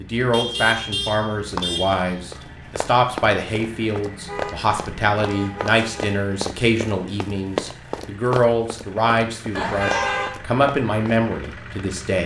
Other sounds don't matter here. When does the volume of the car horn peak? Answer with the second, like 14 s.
10 s.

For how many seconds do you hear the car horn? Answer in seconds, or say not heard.
5 s.